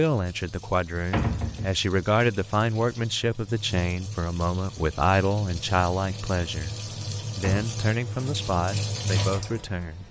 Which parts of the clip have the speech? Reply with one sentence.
You can hear the speech from 0.0 to 6.8 s and from 7.3 to 10.0 s.